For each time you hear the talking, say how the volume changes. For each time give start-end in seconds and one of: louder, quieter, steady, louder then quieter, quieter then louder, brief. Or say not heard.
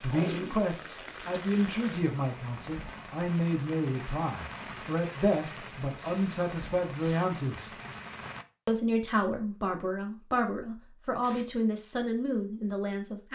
0.0-7.7 steady
8.7-13.3 steady.